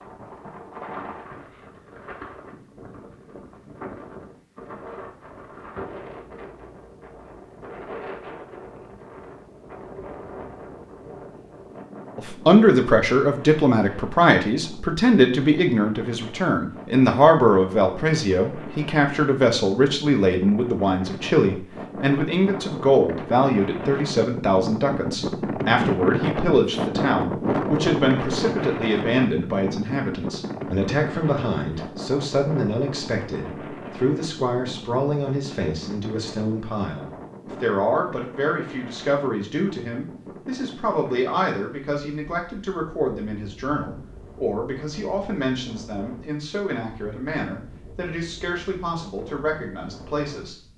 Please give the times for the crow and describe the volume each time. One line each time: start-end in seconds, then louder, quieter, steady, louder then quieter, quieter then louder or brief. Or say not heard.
not heard.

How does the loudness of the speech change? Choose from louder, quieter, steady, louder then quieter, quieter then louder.
quieter.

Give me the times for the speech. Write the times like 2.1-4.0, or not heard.
12.2-50.5.